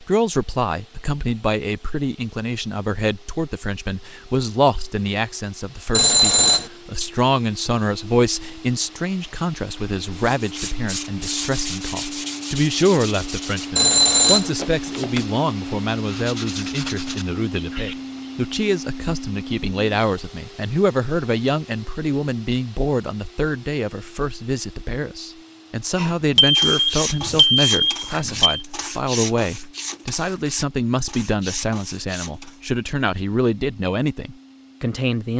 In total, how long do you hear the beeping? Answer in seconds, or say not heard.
4 s.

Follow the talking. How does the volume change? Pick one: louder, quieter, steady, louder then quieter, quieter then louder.
steady.